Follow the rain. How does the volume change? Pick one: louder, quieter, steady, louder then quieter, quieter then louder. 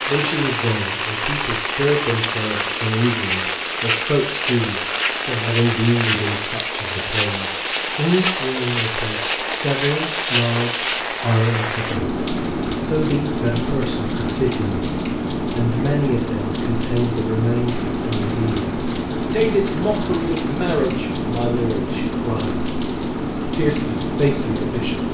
steady.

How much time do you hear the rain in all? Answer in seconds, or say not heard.
25 s.